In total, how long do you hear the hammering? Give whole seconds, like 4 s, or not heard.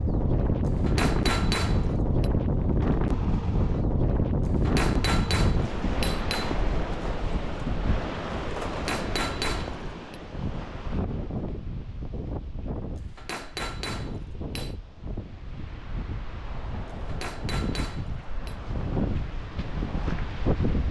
8 s.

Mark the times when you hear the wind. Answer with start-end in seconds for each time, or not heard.
0.0-20.8.